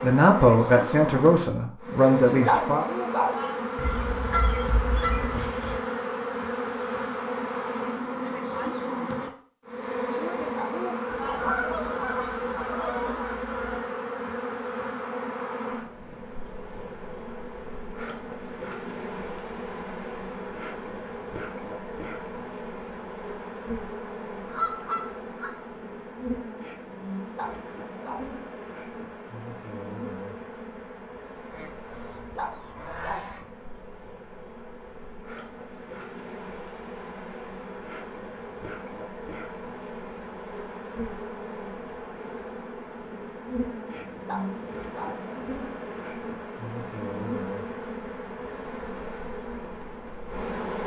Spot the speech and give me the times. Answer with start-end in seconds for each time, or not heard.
0.0-2.9.